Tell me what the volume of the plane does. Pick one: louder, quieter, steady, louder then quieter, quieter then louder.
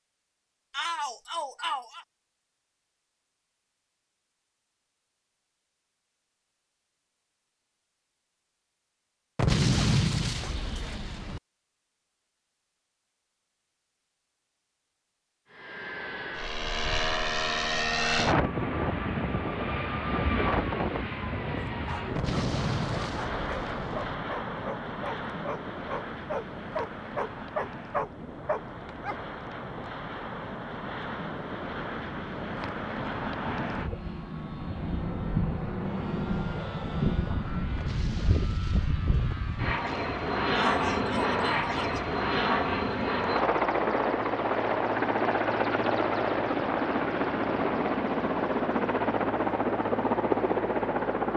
quieter then louder.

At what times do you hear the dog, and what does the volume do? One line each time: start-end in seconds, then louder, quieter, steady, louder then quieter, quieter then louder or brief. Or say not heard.
21.6-29.2 louder.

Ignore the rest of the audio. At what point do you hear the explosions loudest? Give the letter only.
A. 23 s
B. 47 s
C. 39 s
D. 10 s
D.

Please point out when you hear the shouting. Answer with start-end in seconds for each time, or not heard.
0.7-2.0, 40.5-42.1.